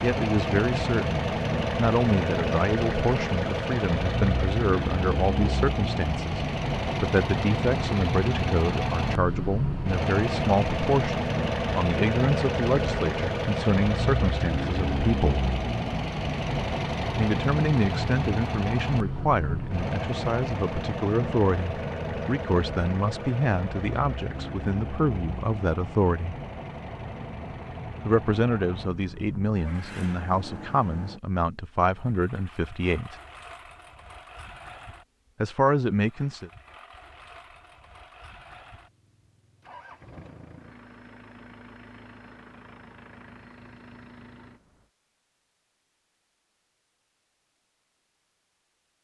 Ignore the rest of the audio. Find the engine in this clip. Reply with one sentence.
You can hear the engine from 0.0 to 44.9 s.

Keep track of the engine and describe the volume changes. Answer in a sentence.
The volume of the engine goes down.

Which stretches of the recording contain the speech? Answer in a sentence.
The speech can be heard from 0.0 to 15.4 s, from 17.1 to 26.4 s, from 28.1 to 33.1 s and from 35.4 to 36.5 s.